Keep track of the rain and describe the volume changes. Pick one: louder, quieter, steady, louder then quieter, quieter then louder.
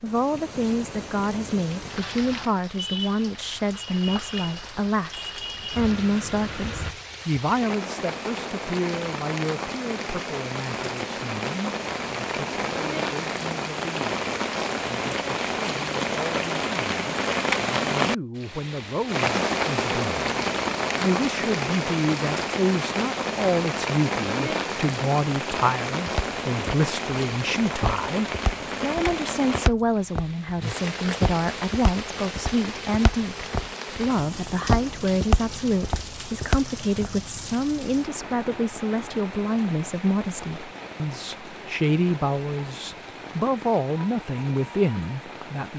louder then quieter.